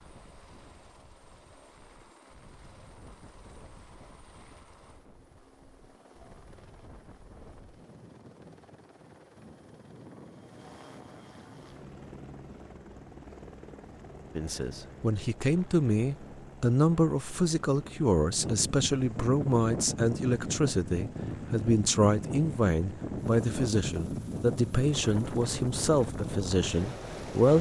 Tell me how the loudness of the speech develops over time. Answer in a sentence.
The loudness of the speech stays about the same.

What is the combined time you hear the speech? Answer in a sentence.
You can hear the speech for 13 seconds altogether.